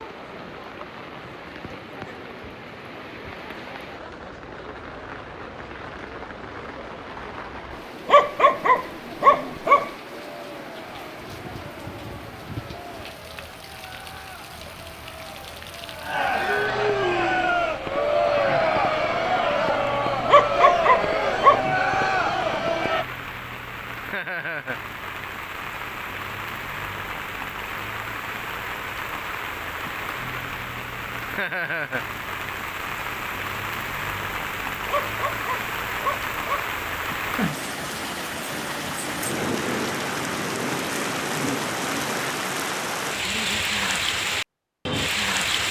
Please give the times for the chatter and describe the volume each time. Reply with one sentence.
The chatter can be heard from 0.0 to 23.1 s, getting louder.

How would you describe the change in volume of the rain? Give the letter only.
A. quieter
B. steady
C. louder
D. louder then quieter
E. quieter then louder
C.